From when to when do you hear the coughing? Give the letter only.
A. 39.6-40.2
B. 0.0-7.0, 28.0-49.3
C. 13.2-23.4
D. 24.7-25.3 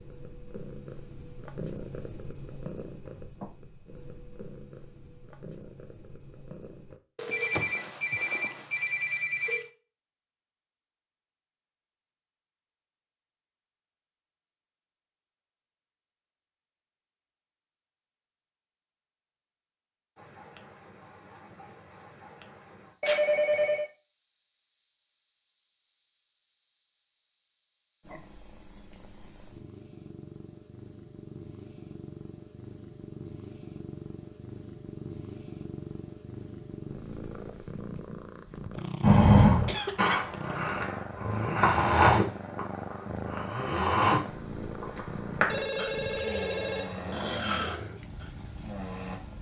A.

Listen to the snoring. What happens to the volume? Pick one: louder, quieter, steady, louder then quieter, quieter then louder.
quieter.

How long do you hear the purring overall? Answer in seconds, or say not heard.
28 s.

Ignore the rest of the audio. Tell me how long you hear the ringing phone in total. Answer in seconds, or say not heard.
5 s.